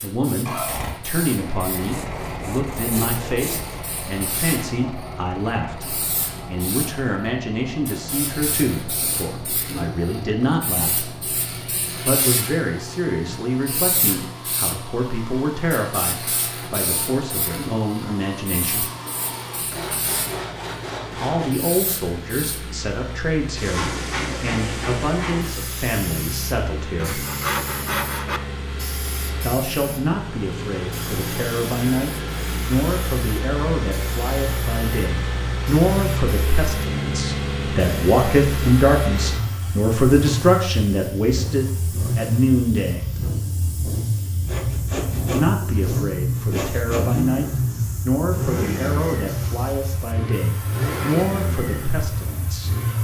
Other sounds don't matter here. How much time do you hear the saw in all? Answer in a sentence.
You can hear the saw for 8 seconds altogether.